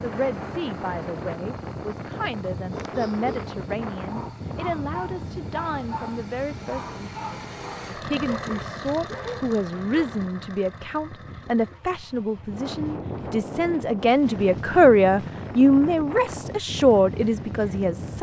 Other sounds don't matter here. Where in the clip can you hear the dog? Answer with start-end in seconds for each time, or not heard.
2.7-10.1.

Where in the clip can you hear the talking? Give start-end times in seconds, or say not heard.
0.0-7.1, 7.9-18.1.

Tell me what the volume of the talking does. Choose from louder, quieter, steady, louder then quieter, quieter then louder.
louder.